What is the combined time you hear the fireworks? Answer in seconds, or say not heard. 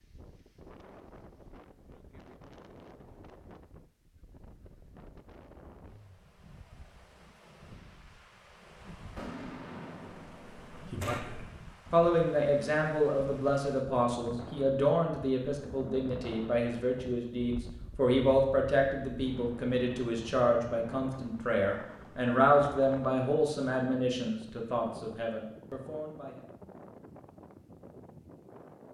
2 s.